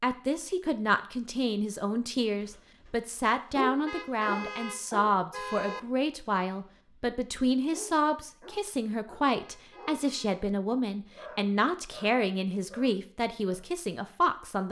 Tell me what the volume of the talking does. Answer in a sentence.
The volume of the talking stays about the same.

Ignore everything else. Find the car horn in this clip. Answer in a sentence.
The car horn can be heard from 3.9 to 5.8 s and from 9.3 to 10.4 s.